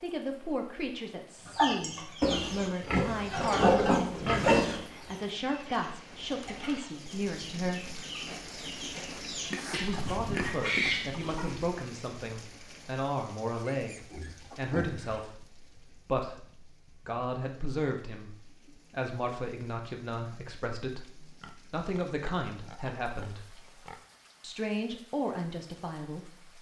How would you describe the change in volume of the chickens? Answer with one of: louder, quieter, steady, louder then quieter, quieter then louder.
quieter then louder.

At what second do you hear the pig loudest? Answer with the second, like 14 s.
4 s.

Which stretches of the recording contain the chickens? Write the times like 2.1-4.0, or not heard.
1.4-11.6.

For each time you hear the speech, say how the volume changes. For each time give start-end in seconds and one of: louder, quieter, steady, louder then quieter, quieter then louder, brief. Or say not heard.
0.0-8.0 steady
9.7-23.4 steady
24.4-26.5 brief.